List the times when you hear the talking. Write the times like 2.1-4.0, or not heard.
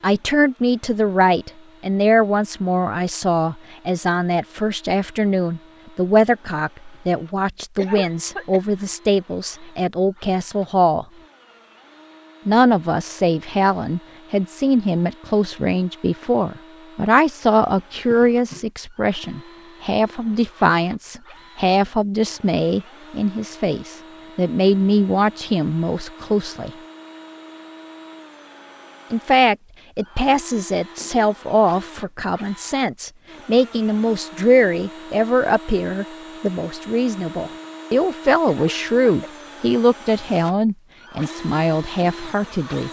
0.0-11.1, 12.4-26.7, 29.1-42.8.